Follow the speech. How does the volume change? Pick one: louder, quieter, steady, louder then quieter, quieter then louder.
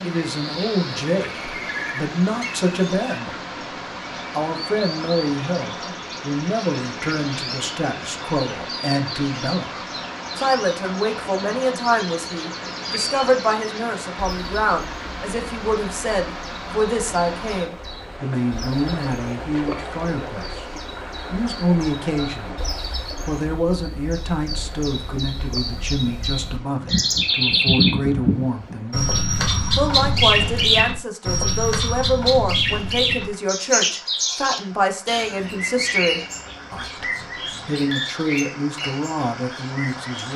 steady.